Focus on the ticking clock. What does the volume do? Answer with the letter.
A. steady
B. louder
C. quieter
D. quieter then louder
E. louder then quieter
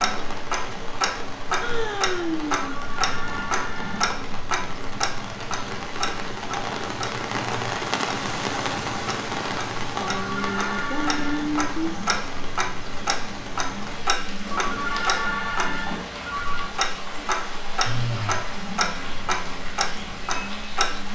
A.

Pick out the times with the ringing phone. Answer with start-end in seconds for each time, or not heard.
2.6-4.0, 10.1-11.6, 14.5-16.8.